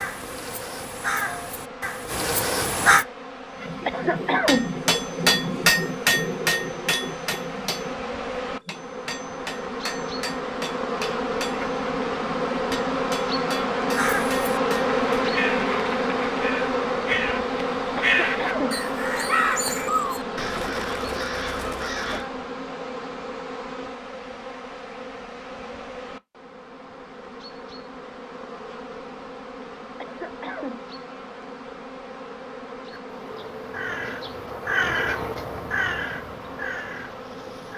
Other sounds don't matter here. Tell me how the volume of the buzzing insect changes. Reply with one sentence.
The loudness of the buzzing insect goes up, then down.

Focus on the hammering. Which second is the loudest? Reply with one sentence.
The loudest moment of the hammering is at 6 seconds.